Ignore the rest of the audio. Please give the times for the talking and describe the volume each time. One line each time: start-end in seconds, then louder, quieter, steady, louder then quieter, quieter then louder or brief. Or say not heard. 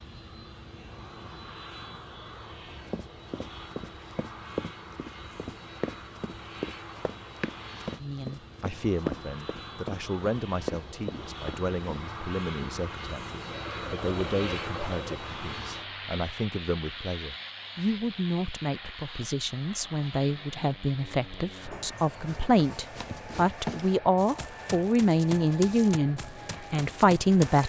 8.0-27.6 louder.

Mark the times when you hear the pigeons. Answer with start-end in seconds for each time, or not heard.
13.4-15.1.